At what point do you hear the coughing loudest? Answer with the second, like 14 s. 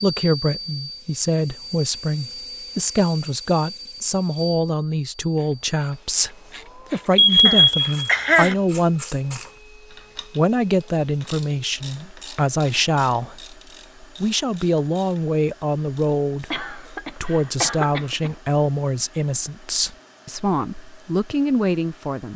8 s.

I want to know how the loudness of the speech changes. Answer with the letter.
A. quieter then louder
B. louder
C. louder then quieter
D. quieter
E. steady
E.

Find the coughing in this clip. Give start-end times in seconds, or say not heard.
7.5-8.6, 16.5-18.4.